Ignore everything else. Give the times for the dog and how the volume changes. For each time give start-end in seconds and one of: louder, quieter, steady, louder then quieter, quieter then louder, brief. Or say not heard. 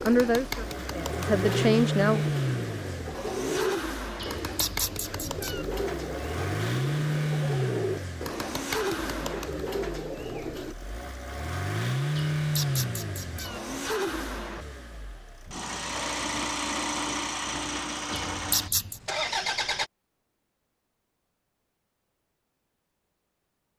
not heard.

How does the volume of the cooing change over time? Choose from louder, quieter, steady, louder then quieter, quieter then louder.
steady.